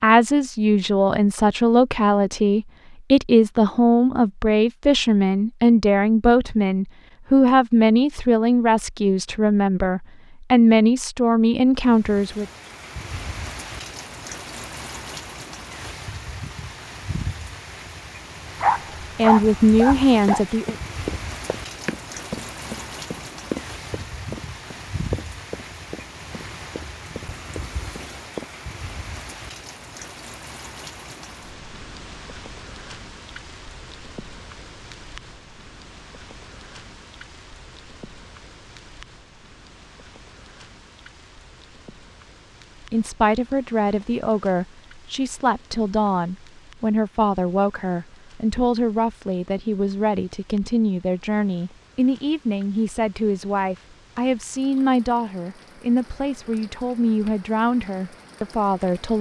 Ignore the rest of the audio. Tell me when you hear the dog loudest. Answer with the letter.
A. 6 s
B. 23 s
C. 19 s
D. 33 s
C.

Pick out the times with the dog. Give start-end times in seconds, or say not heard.
18.6-20.4.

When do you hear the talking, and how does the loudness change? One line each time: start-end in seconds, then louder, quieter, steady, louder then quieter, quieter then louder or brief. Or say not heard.
0.0-12.4 steady
19.1-20.8 brief
42.9-59.1 steady.